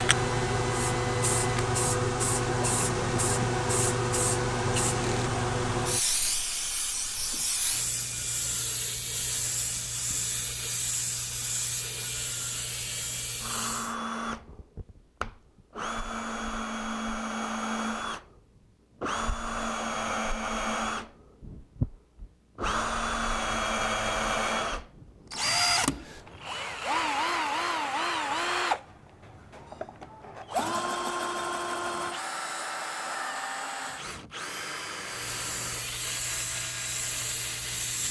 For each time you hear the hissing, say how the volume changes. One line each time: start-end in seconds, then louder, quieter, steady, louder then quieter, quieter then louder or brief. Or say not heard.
0.0-13.9 quieter
35.0-38.0 brief.